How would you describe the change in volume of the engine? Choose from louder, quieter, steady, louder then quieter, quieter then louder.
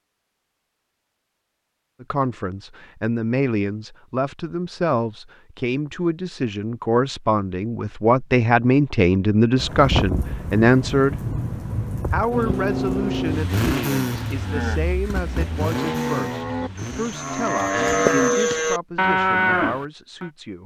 quieter.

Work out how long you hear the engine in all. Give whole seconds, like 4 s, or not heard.
6 s.